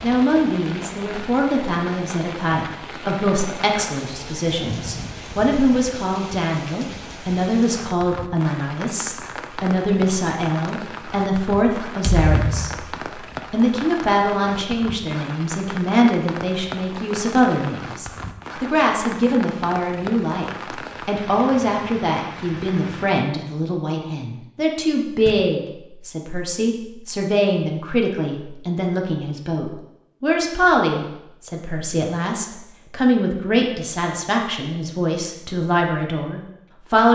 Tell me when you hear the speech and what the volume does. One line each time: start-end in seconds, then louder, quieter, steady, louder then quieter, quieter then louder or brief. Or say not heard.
0.0-12.8 steady
13.5-37.0 steady.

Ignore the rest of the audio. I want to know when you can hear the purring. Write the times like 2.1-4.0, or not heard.
not heard.